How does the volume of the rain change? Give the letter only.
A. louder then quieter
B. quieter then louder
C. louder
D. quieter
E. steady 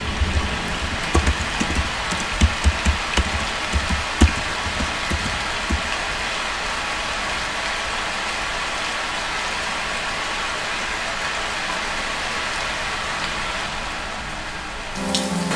E.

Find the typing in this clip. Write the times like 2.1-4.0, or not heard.
0.1-5.9.